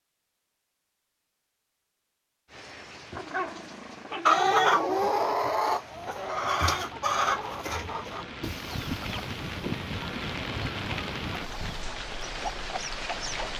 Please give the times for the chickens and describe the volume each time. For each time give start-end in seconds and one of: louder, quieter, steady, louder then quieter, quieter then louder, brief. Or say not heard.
4.2-13.5 quieter.